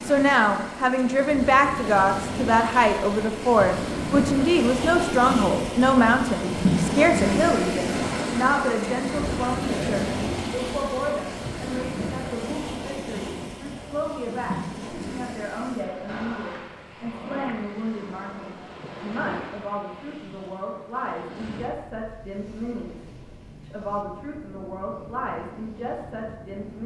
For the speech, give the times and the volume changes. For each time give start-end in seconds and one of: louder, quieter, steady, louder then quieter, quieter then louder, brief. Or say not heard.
0.1-26.8 quieter.